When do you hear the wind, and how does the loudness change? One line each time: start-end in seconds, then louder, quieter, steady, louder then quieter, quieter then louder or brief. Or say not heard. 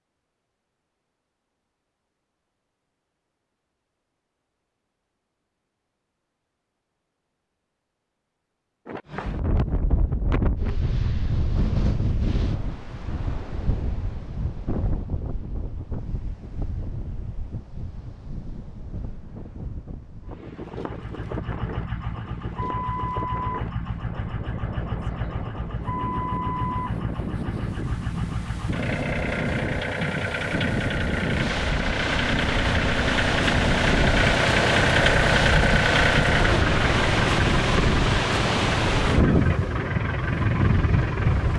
8.8-41.5 quieter then louder.